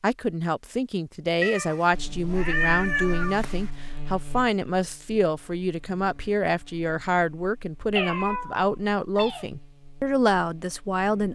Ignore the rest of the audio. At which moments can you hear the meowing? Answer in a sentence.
You can hear the meowing from 1.4 to 3.7 s and from 8.0 to 9.4 s.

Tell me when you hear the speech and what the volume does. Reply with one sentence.
The speech can be heard from 0.0 to 11.3 s, at a steady volume.